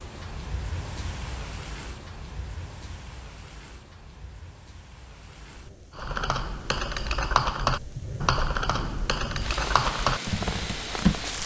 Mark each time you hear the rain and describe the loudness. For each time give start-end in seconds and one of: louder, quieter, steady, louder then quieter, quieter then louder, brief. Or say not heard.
0.0-11.4 quieter then louder.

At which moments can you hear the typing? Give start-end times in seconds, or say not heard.
6.0-11.4.